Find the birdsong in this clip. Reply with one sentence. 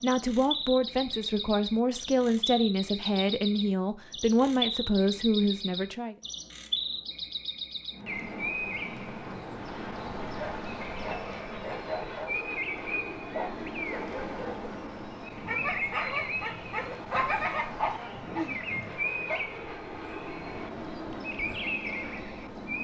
You can hear the birdsong from 0.0 to 22.7 s.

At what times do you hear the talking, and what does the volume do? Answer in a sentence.
You can hear the talking from 0.0 to 6.2 s, at a steady volume.